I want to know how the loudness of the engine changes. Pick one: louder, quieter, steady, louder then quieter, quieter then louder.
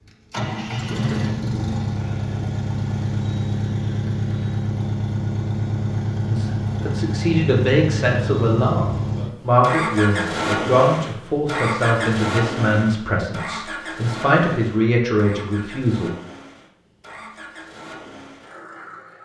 quieter.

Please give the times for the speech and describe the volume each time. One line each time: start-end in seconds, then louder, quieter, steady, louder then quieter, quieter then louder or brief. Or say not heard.
6.3-16.1 steady.